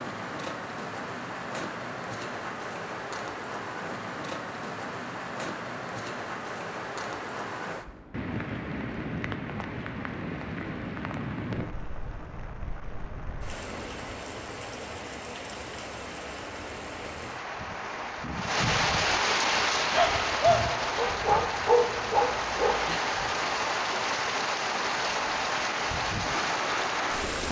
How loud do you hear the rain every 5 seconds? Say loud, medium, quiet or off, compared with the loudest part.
medium, medium, medium, loud, loud, loud.